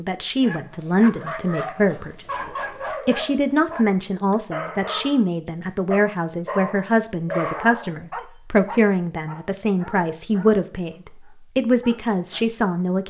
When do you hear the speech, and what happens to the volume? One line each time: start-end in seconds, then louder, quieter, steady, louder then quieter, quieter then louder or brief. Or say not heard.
0.0-13.0 steady.